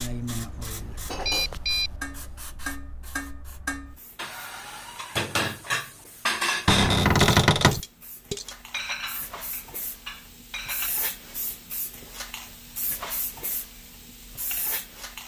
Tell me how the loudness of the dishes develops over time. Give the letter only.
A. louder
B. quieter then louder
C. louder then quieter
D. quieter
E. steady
C.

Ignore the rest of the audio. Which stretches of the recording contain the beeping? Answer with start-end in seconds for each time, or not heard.
0.8-1.9.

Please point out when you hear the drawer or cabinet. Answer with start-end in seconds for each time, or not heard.
6.7-7.8.